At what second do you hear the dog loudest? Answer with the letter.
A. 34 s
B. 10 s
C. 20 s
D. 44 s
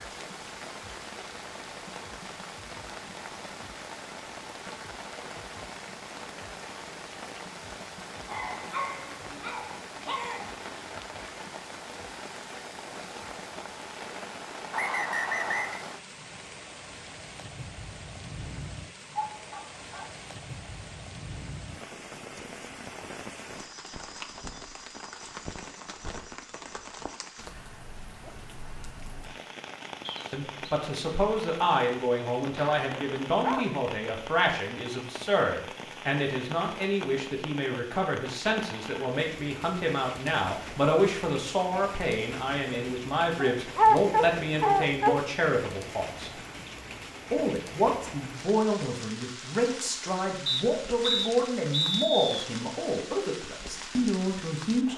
D.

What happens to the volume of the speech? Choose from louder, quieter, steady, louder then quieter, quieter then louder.
steady.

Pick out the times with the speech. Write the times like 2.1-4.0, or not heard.
30.3-46.3, 47.3-54.9.